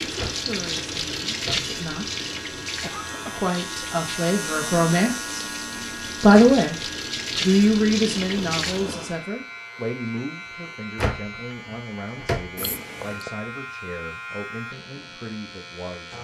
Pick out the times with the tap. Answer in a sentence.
You can hear the tap from 0.0 to 9.2 s.